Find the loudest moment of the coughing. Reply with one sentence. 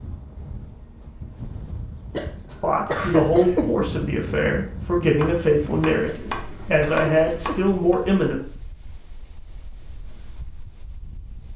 The loudest moment of the coughing is at 3 seconds.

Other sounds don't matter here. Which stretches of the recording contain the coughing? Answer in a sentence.
You can hear the coughing from 2.1 to 3.8 s and from 6.0 to 7.7 s.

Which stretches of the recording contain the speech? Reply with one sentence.
The speech can be heard from 2.5 to 8.4 s.